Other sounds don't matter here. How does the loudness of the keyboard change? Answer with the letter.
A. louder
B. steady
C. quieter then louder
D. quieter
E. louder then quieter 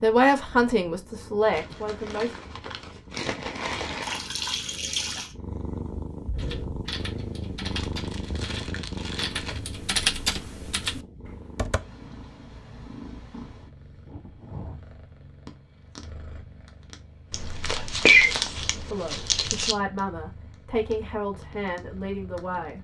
E.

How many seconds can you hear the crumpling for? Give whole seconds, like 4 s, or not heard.
7 s.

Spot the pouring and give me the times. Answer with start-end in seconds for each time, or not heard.
4.0-5.3.